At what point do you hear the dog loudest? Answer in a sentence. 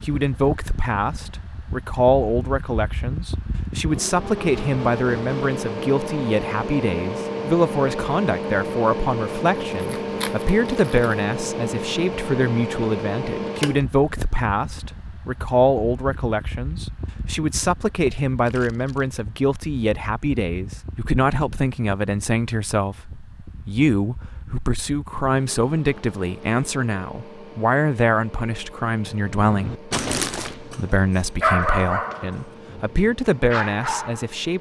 The volume of the dog peaks at 32 seconds.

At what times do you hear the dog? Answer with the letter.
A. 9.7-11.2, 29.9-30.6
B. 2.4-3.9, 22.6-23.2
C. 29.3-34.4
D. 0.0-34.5
C.